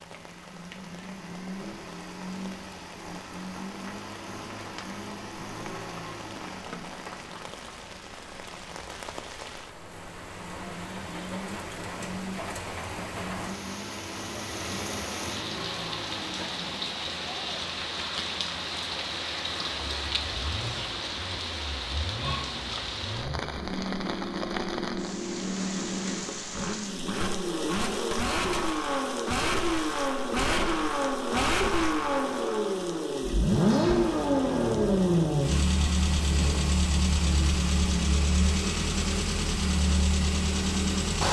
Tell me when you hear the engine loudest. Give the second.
34 s.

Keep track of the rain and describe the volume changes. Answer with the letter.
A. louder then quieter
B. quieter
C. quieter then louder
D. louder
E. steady
A.